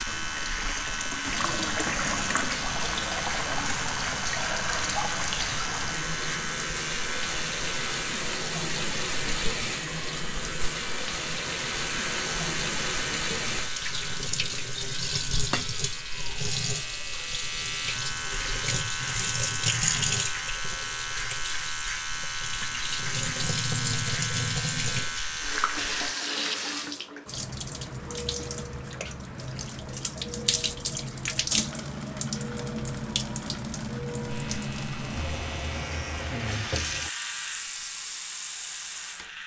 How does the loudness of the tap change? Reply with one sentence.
The loudness of the tap stays about the same.